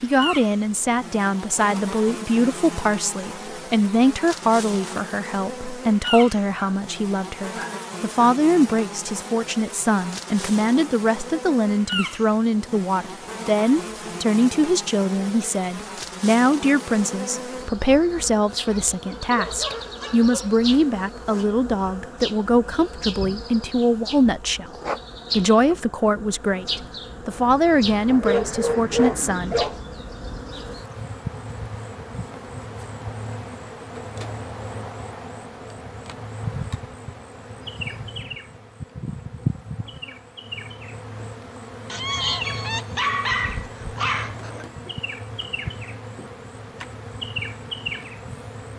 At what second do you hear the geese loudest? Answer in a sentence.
The loudest moment of the geese is at 42 seconds.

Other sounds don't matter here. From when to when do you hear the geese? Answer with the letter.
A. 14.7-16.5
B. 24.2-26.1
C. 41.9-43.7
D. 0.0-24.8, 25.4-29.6
C.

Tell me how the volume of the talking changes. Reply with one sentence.
The volume of the talking stays about the same.